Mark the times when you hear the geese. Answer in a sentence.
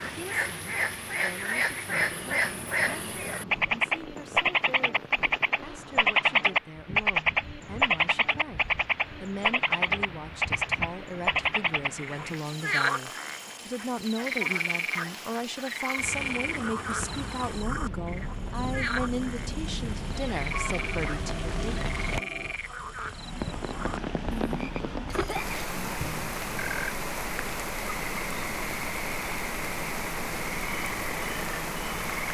The geese can be heard from 20.5 to 22.6 s.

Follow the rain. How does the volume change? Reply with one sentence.
The volume of the rain goes up.